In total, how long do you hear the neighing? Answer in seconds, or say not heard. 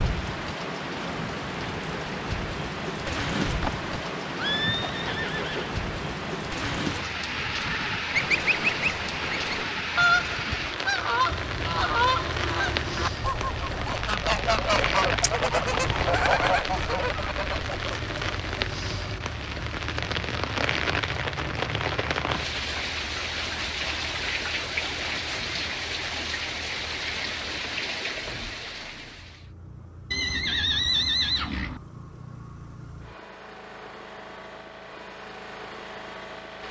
4 s.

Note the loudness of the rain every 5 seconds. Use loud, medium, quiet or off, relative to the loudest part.
loud, loud, loud, loud, loud, loud, off, off.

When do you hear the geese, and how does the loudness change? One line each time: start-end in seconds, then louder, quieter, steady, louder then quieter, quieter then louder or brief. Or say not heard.
7.2-18.0 steady.